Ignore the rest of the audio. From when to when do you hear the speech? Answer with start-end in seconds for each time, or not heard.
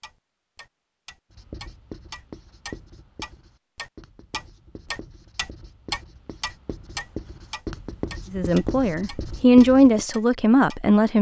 8.3-11.1.